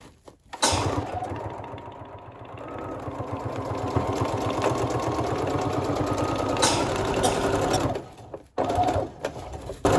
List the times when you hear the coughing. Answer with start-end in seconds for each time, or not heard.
0.6-1.1, 6.6-7.8.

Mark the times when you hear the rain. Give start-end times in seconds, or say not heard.
not heard.